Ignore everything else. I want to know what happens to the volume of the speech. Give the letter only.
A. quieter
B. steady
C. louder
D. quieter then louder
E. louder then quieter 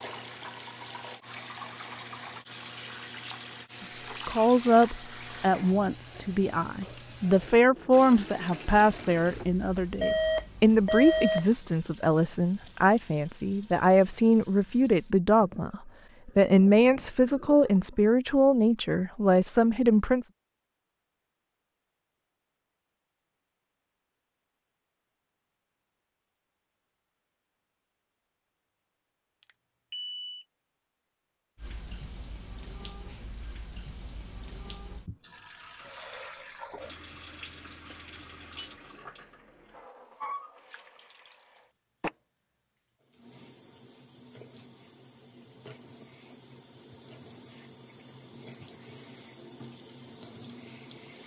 B.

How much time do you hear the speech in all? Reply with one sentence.
The speech can be heard for 16 seconds in total.